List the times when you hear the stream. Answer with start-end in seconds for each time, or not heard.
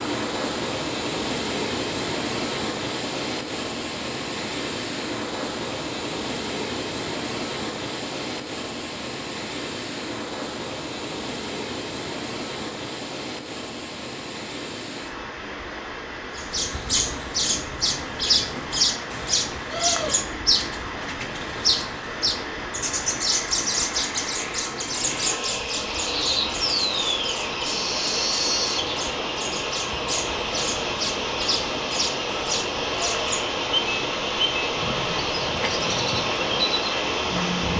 0.0-37.7.